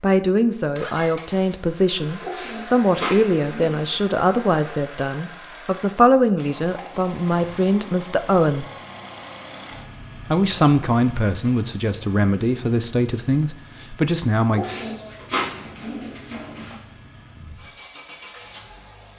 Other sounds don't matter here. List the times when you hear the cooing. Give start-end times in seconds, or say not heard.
2.2-4.0, 14.5-16.8.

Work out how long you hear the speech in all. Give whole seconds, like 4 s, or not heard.
13 s.